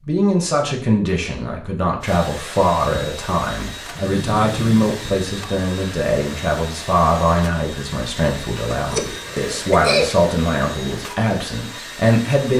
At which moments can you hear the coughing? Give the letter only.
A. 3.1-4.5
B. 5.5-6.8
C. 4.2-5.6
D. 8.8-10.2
D.